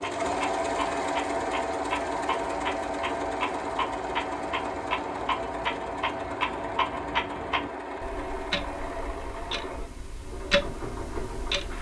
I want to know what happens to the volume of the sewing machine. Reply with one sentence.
The loudness of the sewing machine goes down.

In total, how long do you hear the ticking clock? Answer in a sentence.
The ticking clock can be heard for 12 seconds in total.